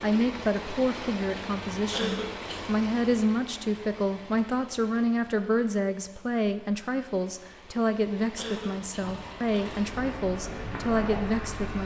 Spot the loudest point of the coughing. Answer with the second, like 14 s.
2 s.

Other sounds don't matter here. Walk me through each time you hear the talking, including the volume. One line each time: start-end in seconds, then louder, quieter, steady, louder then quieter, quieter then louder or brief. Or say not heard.
0.0-11.8 steady.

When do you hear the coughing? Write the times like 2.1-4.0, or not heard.
1.9-2.7, 8.3-9.7.